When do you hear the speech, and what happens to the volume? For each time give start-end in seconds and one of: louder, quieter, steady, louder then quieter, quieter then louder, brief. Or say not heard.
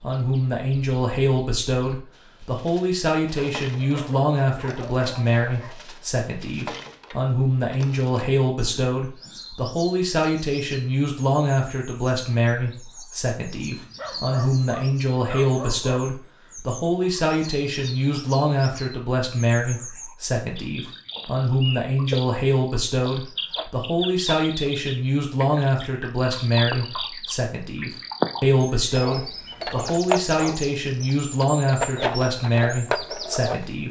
0.0-33.8 steady.